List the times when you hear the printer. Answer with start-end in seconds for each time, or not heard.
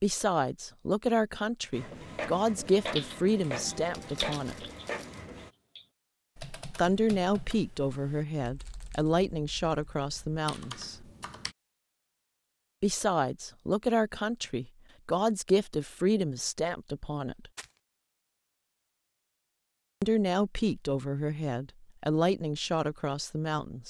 1.7-5.5.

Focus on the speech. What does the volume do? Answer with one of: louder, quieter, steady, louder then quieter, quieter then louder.
steady.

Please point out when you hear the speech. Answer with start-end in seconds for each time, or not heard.
0.0-4.7, 6.8-11.1, 12.8-17.5, 20.0-23.8.